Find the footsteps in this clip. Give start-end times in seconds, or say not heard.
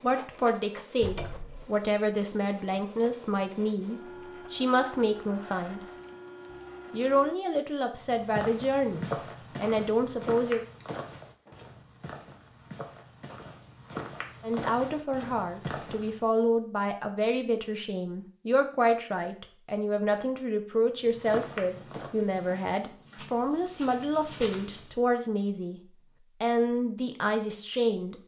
8.0-16.2, 21.0-24.9.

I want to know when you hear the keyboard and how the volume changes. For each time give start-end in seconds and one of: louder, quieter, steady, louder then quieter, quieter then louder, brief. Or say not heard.
not heard.